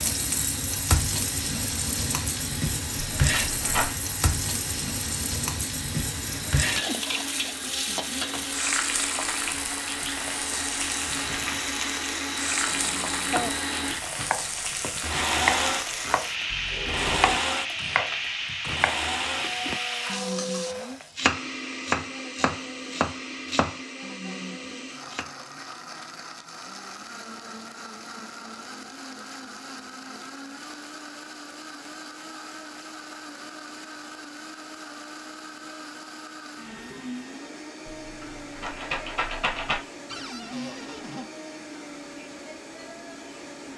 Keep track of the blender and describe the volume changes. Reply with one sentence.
The volume of the blender goes up, then down.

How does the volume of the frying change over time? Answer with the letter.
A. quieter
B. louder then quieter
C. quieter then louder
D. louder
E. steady
E.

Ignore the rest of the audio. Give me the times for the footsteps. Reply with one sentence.
You can't hear the footsteps here.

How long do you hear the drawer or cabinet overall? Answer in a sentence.
The drawer or cabinet can be heard for 3 seconds in total.